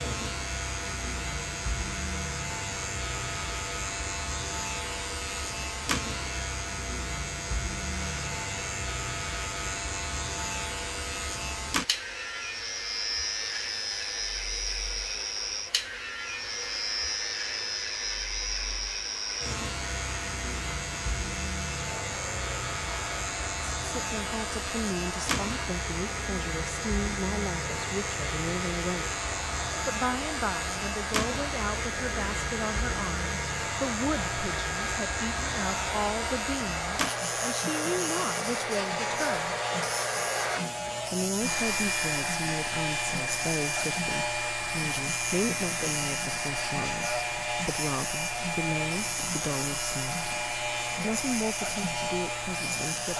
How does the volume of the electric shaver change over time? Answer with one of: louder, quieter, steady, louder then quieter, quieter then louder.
steady.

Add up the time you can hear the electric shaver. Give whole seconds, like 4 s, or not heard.
53 s.